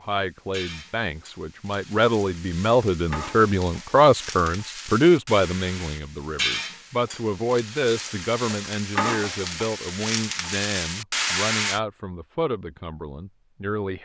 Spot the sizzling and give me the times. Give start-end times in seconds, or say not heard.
0.1-11.8.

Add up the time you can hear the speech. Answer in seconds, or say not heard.
14 s.